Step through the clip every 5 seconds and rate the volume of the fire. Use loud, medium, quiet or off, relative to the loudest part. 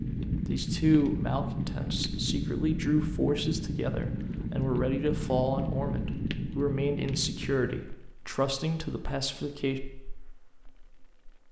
loud, loud, quiet.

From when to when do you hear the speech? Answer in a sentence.
The speech can be heard from 0.2 to 9.8 s.